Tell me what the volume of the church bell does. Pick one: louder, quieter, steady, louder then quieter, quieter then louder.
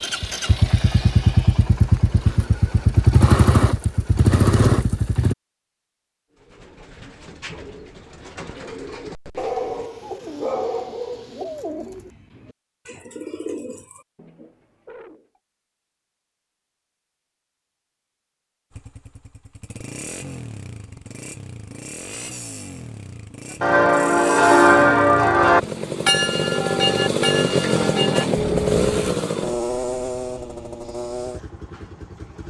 quieter.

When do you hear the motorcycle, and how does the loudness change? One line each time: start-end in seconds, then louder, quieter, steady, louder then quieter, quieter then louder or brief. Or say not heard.
0.0-5.3 steady
18.7-32.4 louder then quieter.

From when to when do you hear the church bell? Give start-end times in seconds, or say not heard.
23.6-29.2.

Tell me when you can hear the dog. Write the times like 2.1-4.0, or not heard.
9.3-11.7.